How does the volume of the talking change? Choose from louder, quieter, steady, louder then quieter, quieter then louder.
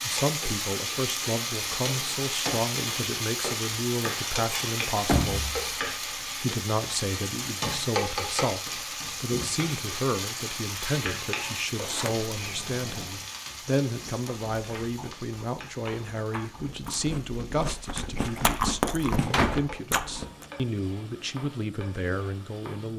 steady.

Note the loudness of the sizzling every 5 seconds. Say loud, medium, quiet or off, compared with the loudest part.
loud, loud, medium, quiet, quiet.